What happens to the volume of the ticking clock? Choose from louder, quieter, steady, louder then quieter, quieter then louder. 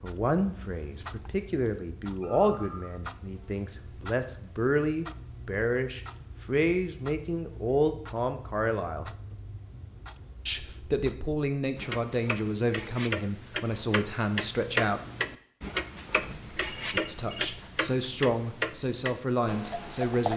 louder.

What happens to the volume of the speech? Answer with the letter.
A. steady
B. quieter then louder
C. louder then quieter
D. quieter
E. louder
A.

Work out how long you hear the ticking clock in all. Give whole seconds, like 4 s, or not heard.
20 s.